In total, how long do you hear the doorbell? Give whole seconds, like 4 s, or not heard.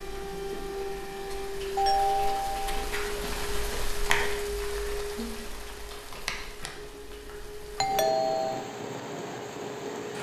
2 s.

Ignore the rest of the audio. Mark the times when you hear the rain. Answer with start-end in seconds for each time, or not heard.
0.0-10.1.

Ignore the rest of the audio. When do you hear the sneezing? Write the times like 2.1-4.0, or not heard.
not heard.